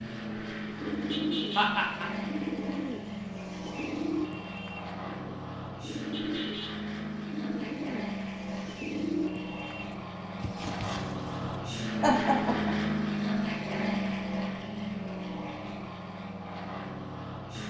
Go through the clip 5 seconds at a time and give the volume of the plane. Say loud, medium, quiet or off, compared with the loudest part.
medium, medium, loud, medium.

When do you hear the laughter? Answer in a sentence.
The laughter can be heard from 1.6 to 2.2 s and from 12.0 to 12.8 s.